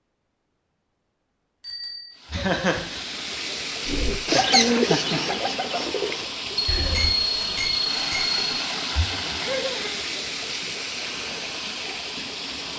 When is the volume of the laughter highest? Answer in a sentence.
The volume of the laughter peaks at 3 seconds.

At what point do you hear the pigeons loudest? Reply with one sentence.
The volume of the pigeons peaks at 5 seconds.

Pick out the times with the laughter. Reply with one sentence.
The laughter can be heard from 2.3 to 3.0 s and from 9.4 to 9.9 s.